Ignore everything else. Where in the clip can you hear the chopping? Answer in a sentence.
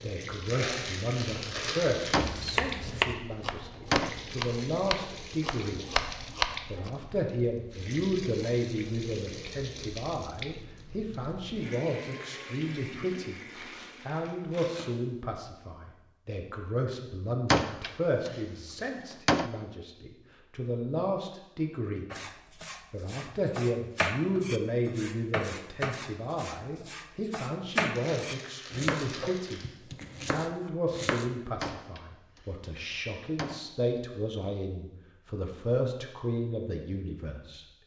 You can hear the chopping from 2.2 to 6.9 s and from 22.1 to 31.4 s.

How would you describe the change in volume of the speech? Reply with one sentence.
The volume of the speech stays about the same.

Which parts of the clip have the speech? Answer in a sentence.
The speech can be heard from 0.0 to 5.8 s, from 6.7 to 13.4 s, from 14.1 to 22.1 s, from 22.9 to 29.6 s and from 30.2 to 37.6 s.